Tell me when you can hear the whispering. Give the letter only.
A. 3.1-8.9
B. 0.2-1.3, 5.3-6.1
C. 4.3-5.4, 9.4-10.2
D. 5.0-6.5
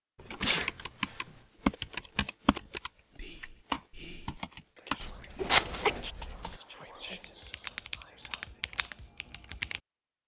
A.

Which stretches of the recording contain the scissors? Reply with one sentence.
The scissors can be heard from 5.0 to 6.5 s.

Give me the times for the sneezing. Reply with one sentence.
The sneezing can be heard from 0.2 to 1.3 s and from 5.3 to 6.1 s.